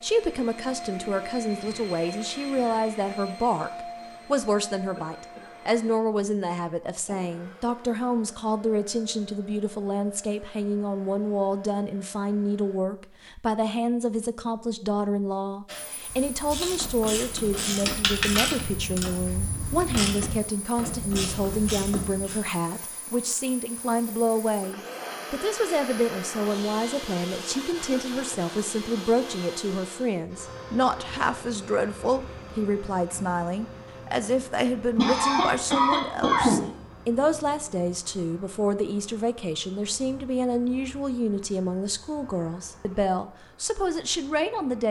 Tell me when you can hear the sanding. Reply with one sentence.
You can't hear the sanding here.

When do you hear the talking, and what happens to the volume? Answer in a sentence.
The talking can be heard from 0.0 to 44.8 s, at a steady volume.